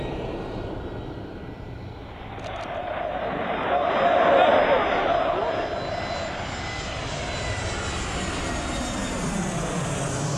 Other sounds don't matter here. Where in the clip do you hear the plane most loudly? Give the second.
10 s.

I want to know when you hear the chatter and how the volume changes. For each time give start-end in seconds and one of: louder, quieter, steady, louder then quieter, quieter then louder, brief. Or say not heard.
1.9-10.2 louder then quieter.